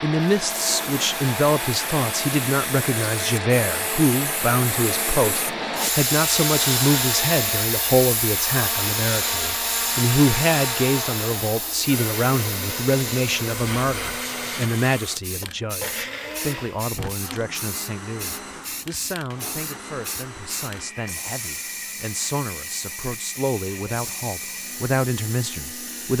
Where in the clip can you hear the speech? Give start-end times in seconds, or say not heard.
0.0-26.1.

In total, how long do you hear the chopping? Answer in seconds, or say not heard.
not heard.